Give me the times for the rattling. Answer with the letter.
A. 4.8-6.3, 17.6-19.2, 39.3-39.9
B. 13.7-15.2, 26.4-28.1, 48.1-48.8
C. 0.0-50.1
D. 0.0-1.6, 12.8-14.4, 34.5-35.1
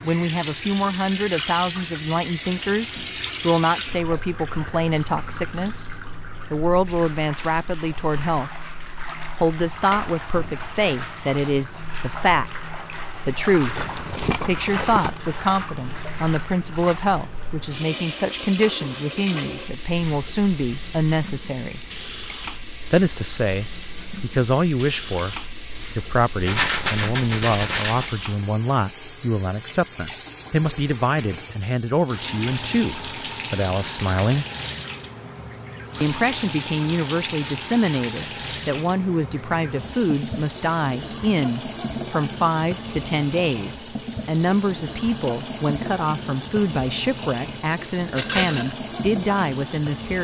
B.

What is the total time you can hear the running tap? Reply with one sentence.
The running tap can be heard for 50 seconds in total.